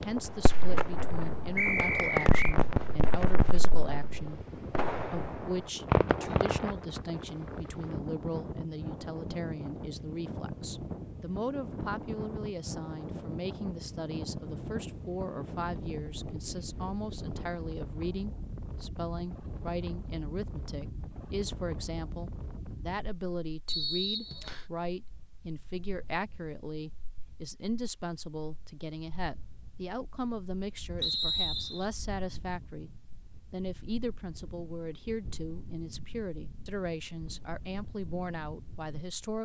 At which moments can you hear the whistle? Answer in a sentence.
The whistle can be heard from 1.6 to 2.5 s, from 23.6 to 24.6 s and from 31.0 to 31.9 s.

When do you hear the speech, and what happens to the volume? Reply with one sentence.
The speech can be heard from 0.0 to 39.3 s, at a steady volume.